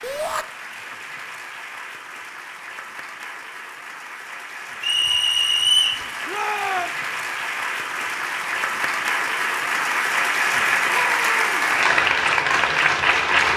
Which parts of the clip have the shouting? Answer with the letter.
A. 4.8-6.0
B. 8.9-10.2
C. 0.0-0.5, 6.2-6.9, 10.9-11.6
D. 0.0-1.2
C.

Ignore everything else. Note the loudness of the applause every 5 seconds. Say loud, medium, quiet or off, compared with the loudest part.
quiet, medium, loud.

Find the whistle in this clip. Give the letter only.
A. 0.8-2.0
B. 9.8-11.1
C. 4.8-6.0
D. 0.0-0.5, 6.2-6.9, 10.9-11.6
C.